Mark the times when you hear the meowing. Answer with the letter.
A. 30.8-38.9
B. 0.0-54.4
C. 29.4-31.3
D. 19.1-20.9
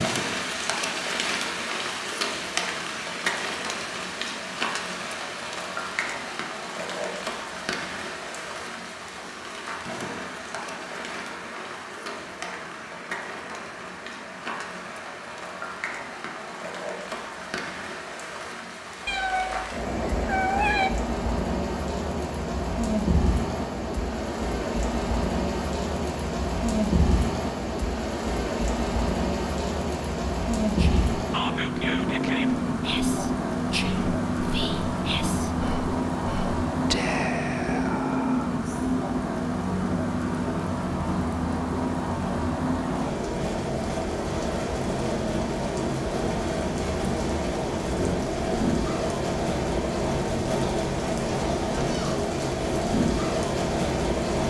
D.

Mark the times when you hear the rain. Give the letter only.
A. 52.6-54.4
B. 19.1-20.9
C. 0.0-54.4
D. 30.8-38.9
C.